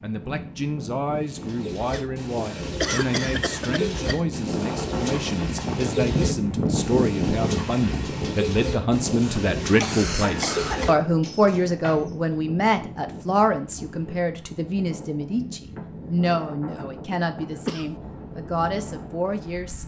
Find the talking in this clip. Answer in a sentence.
The talking can be heard from 0.0 to 19.8 s.